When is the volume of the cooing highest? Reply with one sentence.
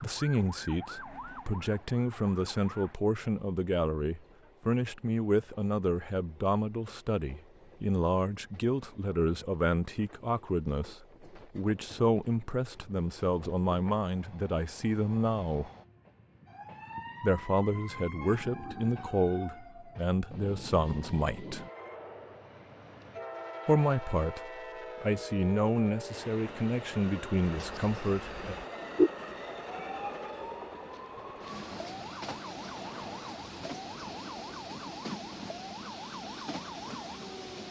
The loudest moment of the cooing is at 29 seconds.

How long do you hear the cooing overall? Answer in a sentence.
You can hear the cooing for 2 seconds altogether.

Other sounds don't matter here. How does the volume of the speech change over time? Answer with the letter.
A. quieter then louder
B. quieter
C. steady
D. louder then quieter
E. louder
C.